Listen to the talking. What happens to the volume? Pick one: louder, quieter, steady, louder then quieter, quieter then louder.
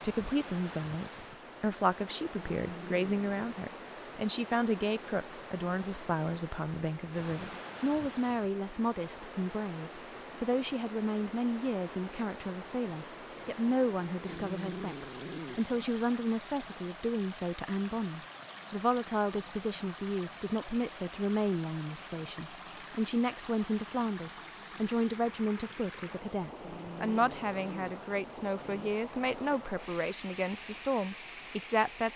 steady.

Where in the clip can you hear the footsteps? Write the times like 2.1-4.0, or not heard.
not heard.